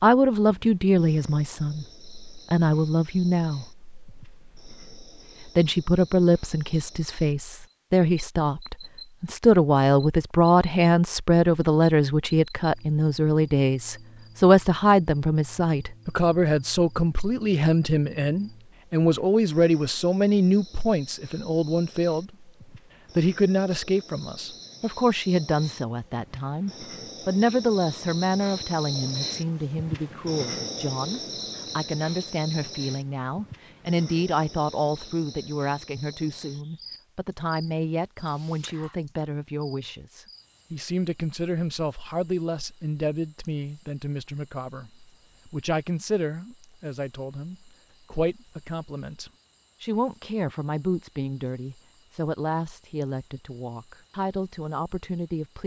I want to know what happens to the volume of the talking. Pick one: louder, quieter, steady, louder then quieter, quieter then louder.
quieter.